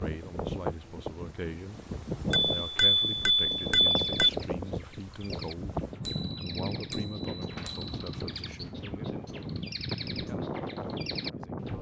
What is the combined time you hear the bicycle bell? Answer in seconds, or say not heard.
4 s.